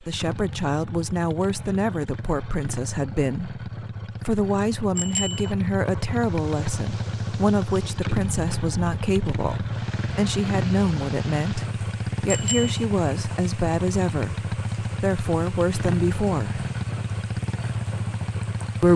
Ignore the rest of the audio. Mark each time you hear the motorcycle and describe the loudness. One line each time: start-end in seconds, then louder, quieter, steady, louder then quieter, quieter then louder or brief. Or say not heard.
0.0-18.9 louder.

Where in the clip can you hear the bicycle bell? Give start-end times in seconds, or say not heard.
5.0-5.5, 12.2-12.8.